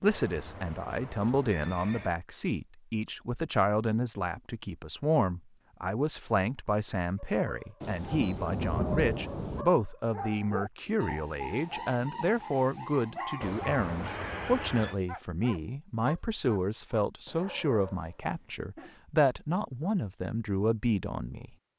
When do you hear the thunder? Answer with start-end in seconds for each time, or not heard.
7.8-9.7.